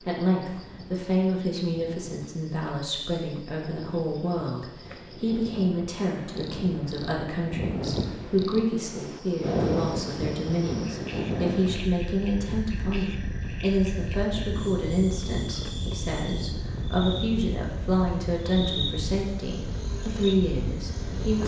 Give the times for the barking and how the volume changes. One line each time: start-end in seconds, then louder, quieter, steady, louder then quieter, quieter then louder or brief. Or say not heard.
not heard.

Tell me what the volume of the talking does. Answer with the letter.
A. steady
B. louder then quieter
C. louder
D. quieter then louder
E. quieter
A.